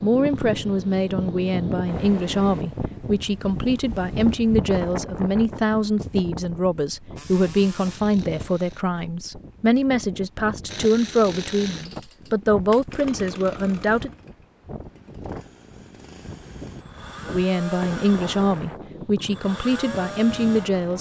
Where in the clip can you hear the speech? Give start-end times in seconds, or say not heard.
0.0-14.1, 17.3-20.9.